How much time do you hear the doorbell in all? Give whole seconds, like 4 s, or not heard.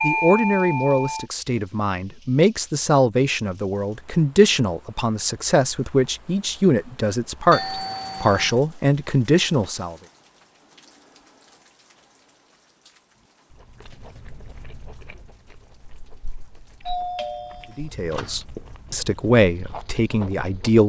4 s.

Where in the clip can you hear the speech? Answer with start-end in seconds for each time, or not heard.
0.0-9.9, 17.8-20.8.